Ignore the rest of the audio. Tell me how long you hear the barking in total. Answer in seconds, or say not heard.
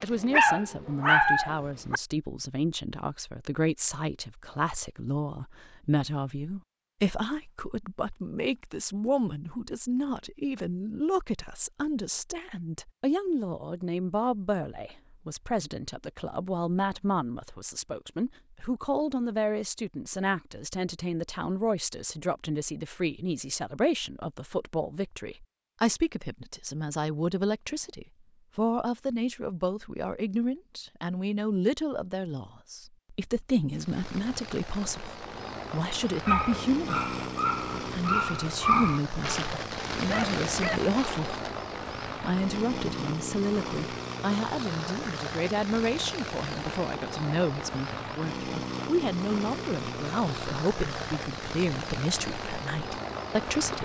7 s.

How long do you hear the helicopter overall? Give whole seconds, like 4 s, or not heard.
20 s.